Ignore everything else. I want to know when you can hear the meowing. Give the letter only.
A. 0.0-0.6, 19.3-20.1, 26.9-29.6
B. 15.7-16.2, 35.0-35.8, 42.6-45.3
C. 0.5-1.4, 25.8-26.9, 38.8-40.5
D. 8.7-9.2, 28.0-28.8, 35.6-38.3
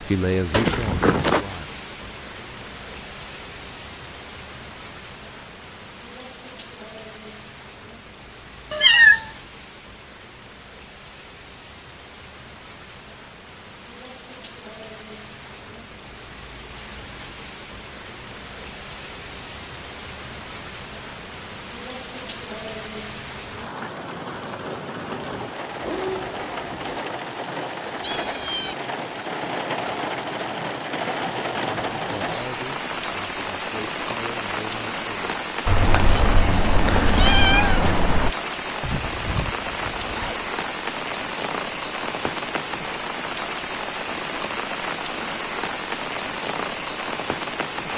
D.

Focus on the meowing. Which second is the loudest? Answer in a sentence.
The volume of the meowing peaks at 9 seconds.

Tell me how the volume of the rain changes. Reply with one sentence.
The loudness of the rain goes up.